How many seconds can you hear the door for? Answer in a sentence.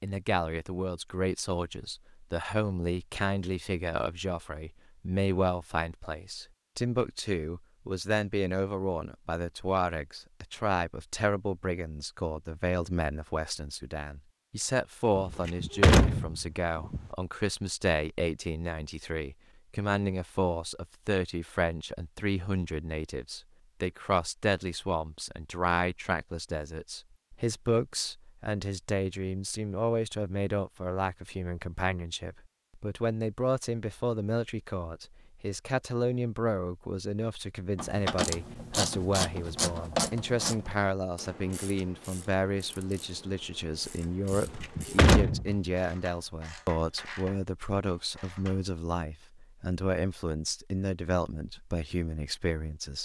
The door can be heard for 3 seconds in total.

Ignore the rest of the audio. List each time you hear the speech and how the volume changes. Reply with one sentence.
You can hear the speech from 0.0 to 52.9 s, at a steady volume.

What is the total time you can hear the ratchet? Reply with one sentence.
You can hear the ratchet for 11 seconds altogether.